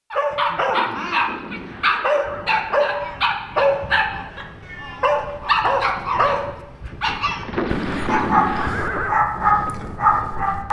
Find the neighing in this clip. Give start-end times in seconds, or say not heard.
0.6-3.3, 7.4-9.2.